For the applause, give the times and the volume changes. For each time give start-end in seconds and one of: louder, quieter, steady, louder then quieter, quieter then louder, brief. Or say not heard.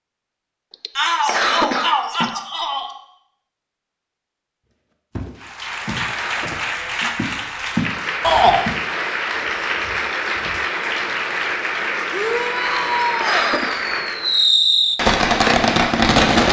5.3-14.5 steady.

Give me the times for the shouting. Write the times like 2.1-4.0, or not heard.
0.9-2.9, 8.2-8.6, 12.1-13.5.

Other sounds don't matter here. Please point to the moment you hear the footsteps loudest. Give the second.
8 s.